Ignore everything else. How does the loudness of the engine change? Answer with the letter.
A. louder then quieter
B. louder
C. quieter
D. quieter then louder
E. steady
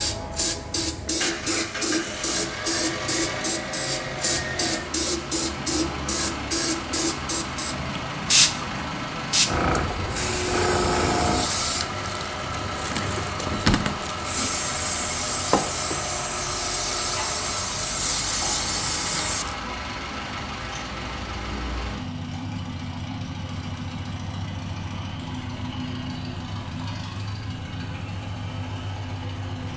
E.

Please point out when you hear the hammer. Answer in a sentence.
The hammer can't be heard in this clip.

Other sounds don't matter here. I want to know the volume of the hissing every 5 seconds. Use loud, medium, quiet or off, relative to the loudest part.
loud, loud, loud, loud, off, off.